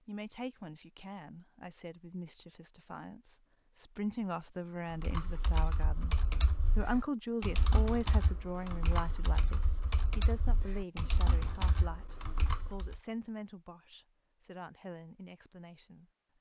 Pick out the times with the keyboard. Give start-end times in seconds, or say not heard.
4.9-13.0.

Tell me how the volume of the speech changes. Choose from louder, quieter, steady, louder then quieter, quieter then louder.
louder then quieter.